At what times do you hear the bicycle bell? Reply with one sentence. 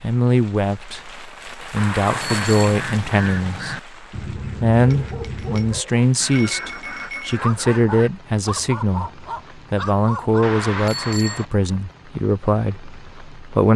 The bicycle bell can be heard from 1.8 to 2.8 s, from 4.9 to 7.3 s and from 10.4 to 11.4 s.